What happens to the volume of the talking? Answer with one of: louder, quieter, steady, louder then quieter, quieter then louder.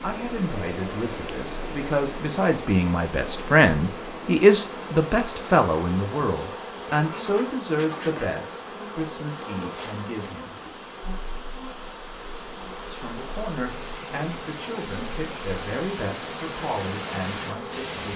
louder then quieter.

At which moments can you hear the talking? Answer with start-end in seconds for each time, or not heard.
0.0-10.6, 12.9-18.1.